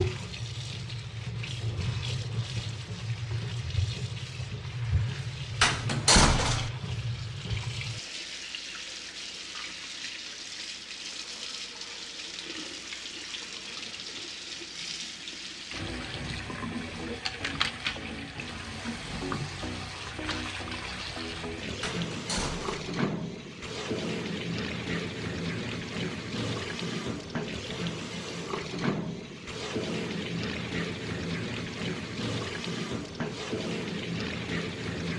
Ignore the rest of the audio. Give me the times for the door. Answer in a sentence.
You can hear the door from 5.6 to 6.7 s and from 21.8 to 22.9 s.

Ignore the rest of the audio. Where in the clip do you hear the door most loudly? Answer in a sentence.
The loudest moment of the door is at 6 seconds.